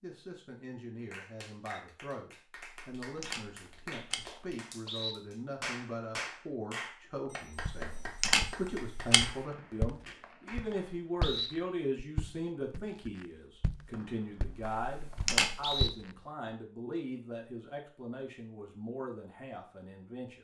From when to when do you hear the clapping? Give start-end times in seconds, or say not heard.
0.9-10.9.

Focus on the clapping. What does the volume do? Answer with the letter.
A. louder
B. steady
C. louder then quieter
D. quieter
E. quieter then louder
C.